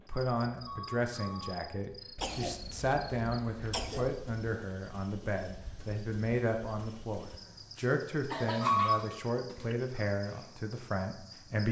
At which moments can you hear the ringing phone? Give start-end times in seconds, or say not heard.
0.5-1.6, 8.4-9.2.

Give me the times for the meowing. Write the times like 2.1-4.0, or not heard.
not heard.